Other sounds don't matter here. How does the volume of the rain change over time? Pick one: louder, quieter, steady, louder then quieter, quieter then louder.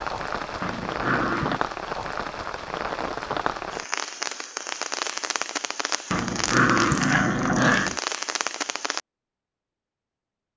steady.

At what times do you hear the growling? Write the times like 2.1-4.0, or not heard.
0.6-1.6, 6.1-8.0.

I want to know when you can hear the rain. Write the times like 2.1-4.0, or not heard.
0.0-9.0.